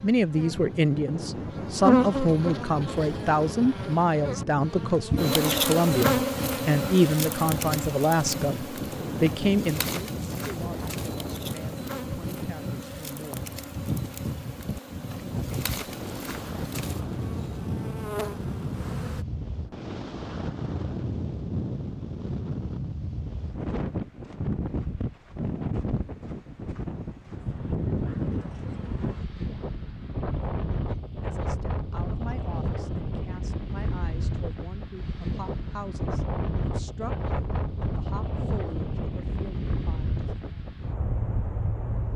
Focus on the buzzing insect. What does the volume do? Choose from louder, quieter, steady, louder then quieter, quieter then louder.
quieter.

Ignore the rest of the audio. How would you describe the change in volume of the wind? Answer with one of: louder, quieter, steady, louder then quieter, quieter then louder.
steady.